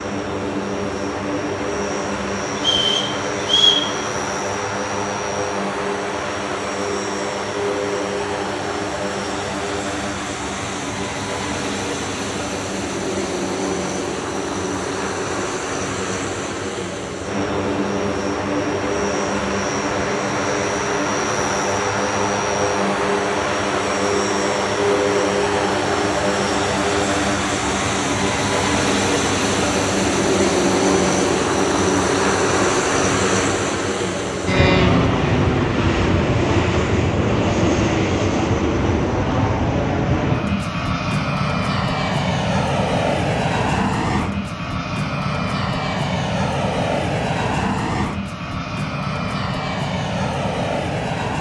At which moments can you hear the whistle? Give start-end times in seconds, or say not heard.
2.5-3.9.